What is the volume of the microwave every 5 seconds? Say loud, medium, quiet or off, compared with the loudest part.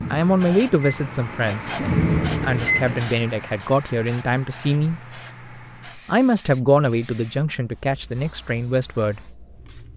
loud, off.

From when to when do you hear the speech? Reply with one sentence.
You can hear the speech from 0.1 to 5.0 s and from 5.8 to 9.9 s.